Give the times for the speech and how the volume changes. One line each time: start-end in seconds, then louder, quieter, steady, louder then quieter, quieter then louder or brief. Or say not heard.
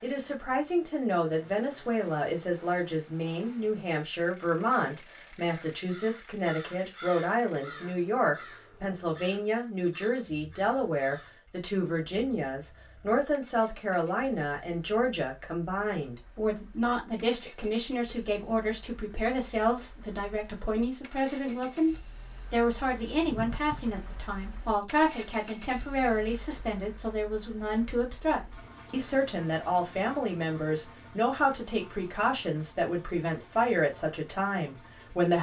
0.0-35.3 steady.